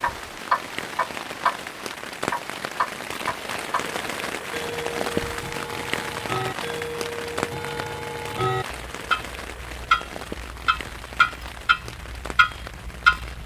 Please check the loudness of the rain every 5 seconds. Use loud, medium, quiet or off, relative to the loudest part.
loud, loud, medium.